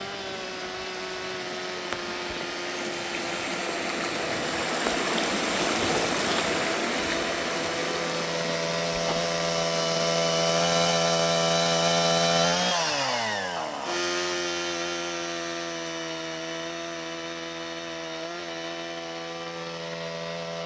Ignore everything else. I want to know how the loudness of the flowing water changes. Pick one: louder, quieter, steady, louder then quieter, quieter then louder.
louder then quieter.